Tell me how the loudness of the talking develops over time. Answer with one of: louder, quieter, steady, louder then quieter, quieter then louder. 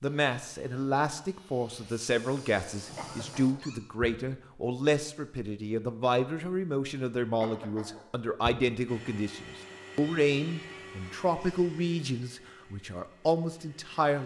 steady.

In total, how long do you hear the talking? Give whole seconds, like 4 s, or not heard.
14 s.